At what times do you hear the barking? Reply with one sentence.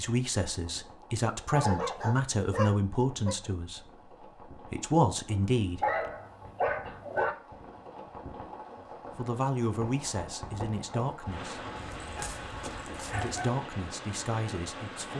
You can hear the barking from 1.4 to 3.4 s, from 5.8 to 7.3 s and from 11.8 to 13.5 s.